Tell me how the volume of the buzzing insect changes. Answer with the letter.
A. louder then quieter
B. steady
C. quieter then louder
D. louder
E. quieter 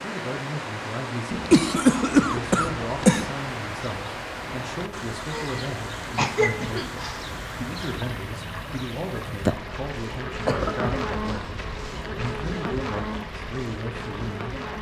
D.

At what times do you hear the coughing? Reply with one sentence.
The coughing can be heard from 1.3 to 3.3 s, from 5.3 to 7.2 s and from 10.4 to 11.5 s.